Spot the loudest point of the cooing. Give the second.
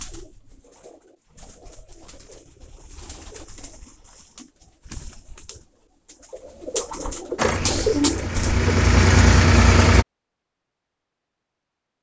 8 s.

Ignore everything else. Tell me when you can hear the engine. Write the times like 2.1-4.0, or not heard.
7.3-10.1.